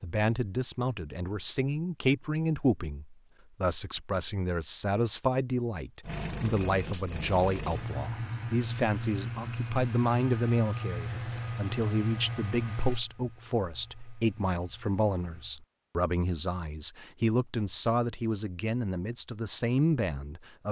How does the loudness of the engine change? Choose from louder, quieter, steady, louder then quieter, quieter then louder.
quieter.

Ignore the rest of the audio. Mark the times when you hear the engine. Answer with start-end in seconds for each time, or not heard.
6.0-15.6.